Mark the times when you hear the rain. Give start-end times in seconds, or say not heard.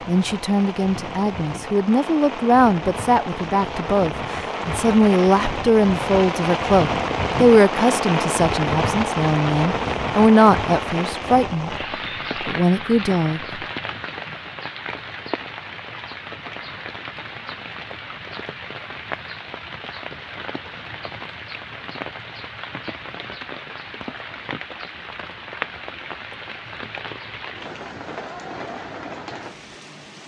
0.0-30.2.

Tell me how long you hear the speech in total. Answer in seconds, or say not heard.
13 s.